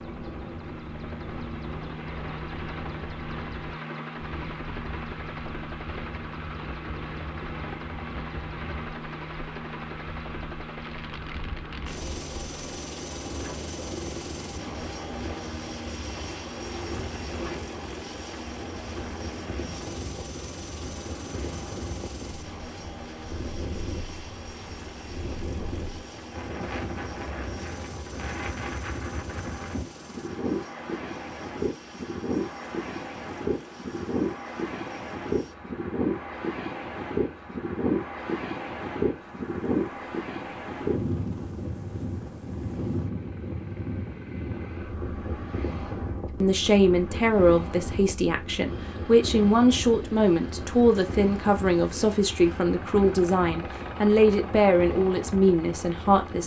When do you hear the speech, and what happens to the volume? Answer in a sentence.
The speech can be heard from 46.4 to 56.4 s, at a steady volume.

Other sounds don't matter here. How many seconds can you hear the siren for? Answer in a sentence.
The siren can't be heard in this clip.